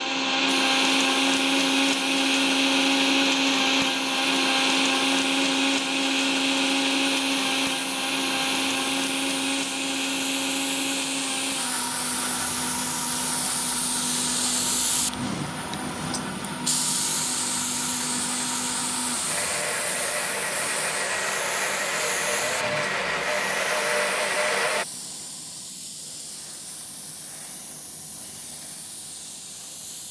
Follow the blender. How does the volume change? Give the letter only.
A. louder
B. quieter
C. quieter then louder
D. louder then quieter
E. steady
C.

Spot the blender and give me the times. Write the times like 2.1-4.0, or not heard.
0.0-24.9.